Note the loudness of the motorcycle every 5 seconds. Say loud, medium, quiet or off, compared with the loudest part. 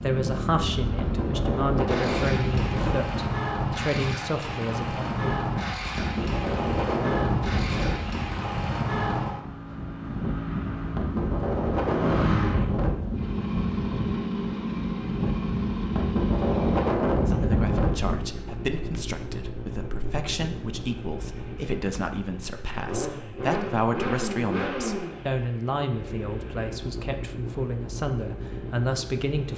loud, loud, loud, loud, loud, medium.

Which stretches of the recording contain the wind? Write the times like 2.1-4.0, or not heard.
0.1-18.2.